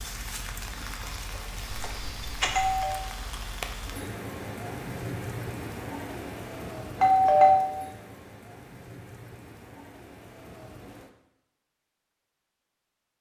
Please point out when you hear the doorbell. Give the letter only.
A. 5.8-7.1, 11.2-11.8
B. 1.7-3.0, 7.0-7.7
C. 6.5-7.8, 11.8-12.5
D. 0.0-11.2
B.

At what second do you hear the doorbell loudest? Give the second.
7 s.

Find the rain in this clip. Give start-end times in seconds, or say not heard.
0.0-11.2.